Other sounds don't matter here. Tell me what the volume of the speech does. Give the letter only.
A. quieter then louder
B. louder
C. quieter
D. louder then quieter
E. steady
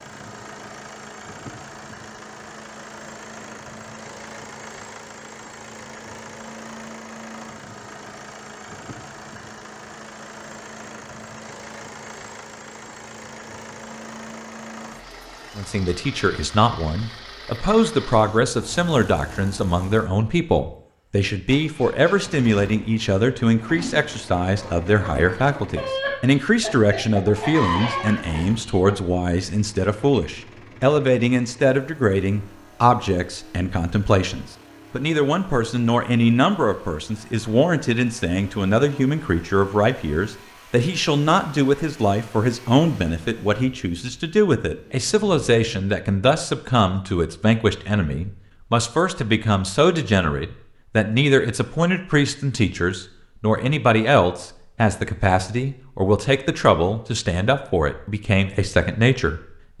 E.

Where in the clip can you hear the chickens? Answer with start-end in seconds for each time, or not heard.
23.5-28.9.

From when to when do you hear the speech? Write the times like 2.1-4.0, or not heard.
15.6-59.7.